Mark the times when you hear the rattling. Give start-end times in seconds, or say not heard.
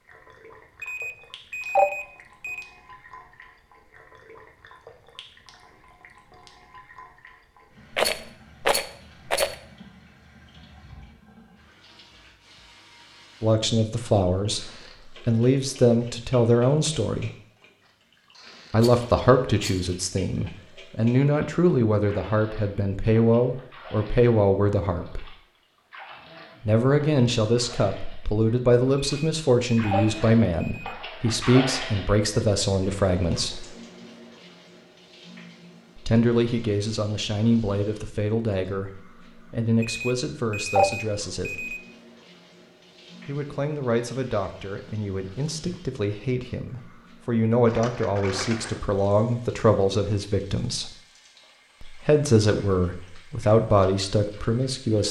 7.9-9.6, 18.8-19.9, 47.6-48.9.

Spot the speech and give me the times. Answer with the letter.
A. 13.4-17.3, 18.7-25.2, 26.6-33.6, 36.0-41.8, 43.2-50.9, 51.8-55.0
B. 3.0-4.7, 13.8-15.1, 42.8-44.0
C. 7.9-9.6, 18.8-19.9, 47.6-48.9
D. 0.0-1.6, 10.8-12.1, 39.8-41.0
A.